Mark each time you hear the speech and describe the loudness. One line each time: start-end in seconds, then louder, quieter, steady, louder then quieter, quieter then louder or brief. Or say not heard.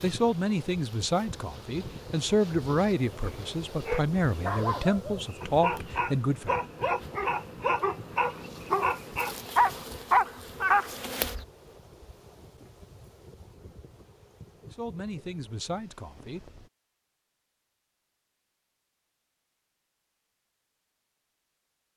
0.0-6.5 steady
14.7-16.4 brief.